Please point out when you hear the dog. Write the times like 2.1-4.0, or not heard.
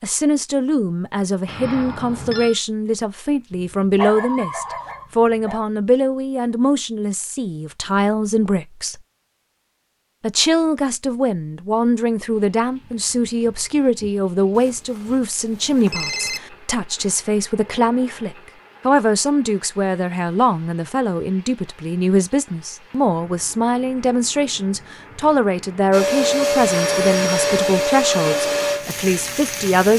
3.5-5.6.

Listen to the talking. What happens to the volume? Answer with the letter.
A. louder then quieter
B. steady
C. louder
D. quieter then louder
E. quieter
B.